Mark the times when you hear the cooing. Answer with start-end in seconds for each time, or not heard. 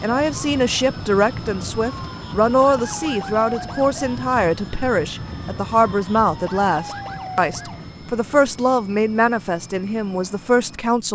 not heard.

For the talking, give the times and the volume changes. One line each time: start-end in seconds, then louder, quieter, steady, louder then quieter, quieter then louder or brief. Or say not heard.
0.0-11.0 steady.